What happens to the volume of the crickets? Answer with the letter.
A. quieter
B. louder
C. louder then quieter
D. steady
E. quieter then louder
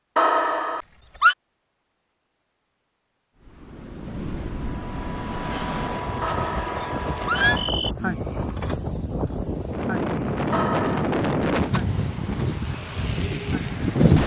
A.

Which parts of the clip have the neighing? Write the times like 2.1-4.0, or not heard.
0.1-1.4, 6.2-7.6, 10.5-11.2.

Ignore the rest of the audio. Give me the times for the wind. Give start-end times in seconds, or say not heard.
3.4-14.2.